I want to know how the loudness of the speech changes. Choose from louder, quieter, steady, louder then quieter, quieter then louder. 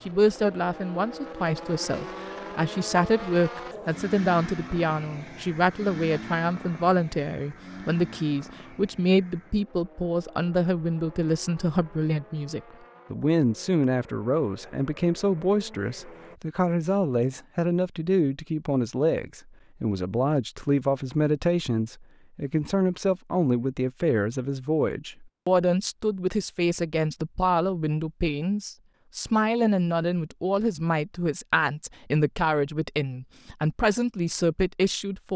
steady.